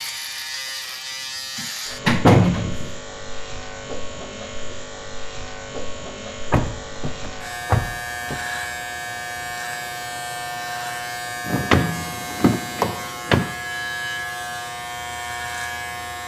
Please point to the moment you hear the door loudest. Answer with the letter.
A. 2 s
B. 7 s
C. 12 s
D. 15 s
A.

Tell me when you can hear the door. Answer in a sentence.
You can hear the door from 1.6 to 2.9 s, from 6.5 to 8.3 s and from 11.4 to 13.5 s.